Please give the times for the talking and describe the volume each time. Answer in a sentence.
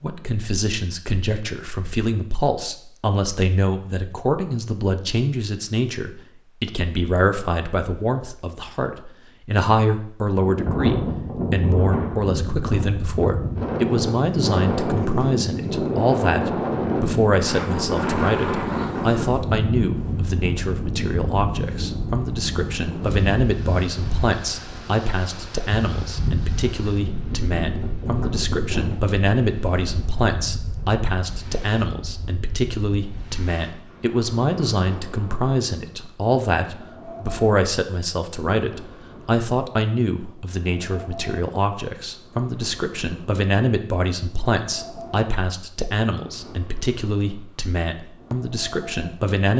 You can hear the talking from 0.0 to 49.5 s, at a steady volume.